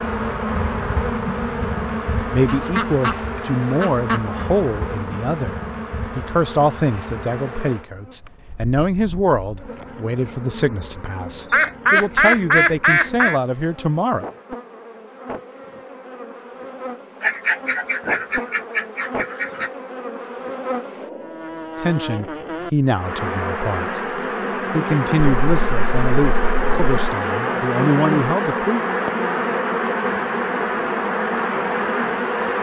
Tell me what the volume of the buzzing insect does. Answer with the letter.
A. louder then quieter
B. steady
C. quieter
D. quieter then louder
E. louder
D.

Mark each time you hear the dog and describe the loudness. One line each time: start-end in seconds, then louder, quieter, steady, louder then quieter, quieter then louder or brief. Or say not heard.
not heard.